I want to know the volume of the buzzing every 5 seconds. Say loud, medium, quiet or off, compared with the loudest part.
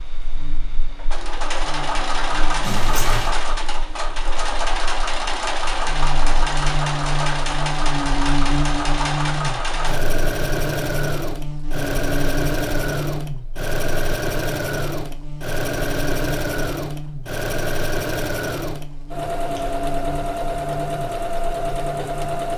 quiet, loud, loud, medium, medium.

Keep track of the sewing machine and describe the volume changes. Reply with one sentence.
The volume of the sewing machine stays about the same.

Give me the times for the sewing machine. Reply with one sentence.
The sewing machine can be heard from 0.0 to 22.5 s.